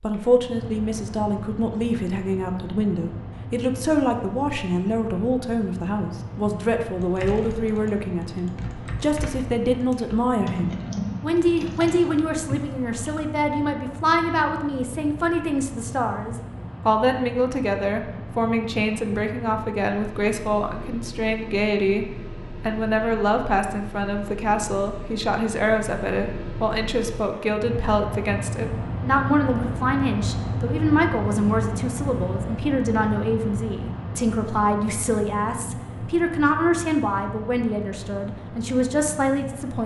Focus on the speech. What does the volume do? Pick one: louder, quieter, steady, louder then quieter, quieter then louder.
steady.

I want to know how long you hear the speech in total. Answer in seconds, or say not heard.
40 s.